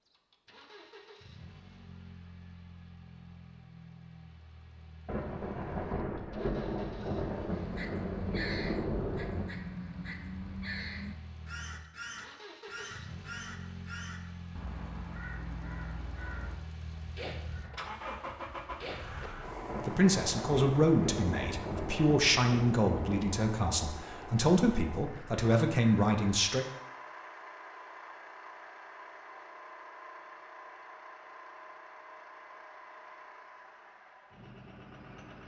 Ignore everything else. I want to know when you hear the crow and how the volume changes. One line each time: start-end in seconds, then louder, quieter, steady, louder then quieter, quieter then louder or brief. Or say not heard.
7.5-19.2 quieter.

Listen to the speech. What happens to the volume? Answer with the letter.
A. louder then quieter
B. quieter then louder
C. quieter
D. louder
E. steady
E.